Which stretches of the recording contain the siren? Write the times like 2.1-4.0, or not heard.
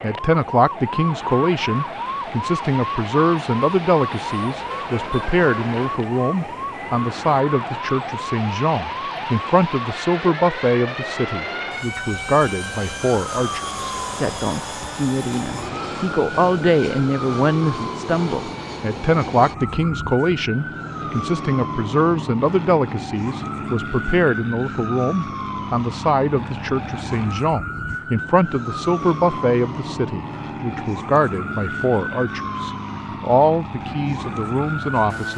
0.0-35.2.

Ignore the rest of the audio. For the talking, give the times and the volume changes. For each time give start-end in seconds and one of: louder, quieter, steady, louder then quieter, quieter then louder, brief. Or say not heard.
0.0-35.3 steady.